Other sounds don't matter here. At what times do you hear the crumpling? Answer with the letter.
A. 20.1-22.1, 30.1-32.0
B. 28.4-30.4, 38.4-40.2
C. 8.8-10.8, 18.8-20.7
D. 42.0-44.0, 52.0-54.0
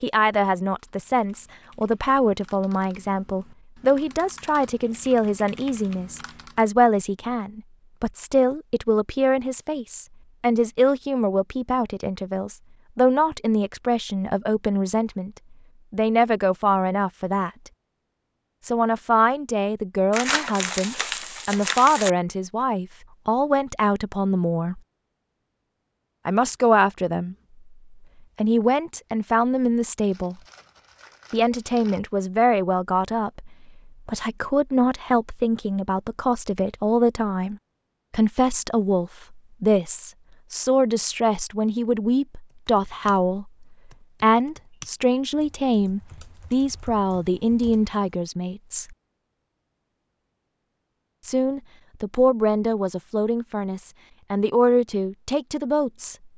A.